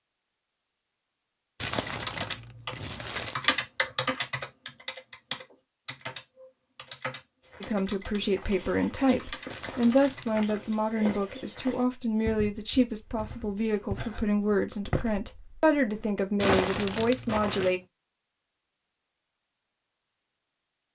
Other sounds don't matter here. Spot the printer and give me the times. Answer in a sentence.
The printer can't be heard in this clip.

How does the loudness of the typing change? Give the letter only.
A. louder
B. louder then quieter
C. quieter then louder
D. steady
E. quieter
E.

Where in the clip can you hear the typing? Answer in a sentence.
The typing can be heard from 1.8 to 10.8 s.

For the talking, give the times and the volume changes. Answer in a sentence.
The talking can be heard from 7.6 to 17.8 s, at a steady volume.